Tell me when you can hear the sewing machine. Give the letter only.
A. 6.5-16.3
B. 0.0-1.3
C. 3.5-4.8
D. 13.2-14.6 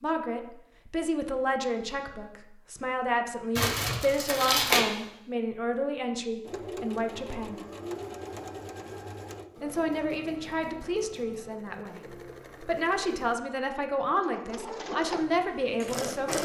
A.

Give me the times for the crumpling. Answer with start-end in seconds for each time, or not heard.
3.5-4.8.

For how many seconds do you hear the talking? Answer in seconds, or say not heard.
14 s.